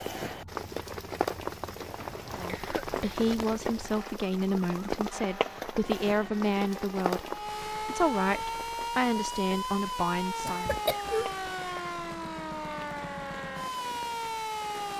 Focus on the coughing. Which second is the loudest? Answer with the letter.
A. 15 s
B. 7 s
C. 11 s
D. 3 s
C.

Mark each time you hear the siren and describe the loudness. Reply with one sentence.
The siren can be heard from 0.2 to 14.9 s, getting louder.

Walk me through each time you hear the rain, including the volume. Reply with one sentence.
The rain can be heard from 0.0 to 14.9 s, getting quieter.